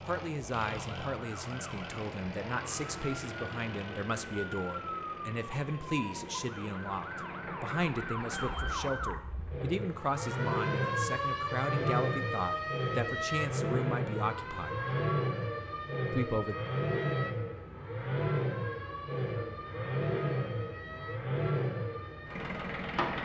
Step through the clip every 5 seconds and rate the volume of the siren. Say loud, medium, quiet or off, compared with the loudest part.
medium, loud, loud, medium, medium.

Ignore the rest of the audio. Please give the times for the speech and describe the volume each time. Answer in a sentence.
You can hear the speech from 0.0 to 14.9 s, at a steady volume; and briefly from 16.1 to 16.6 s.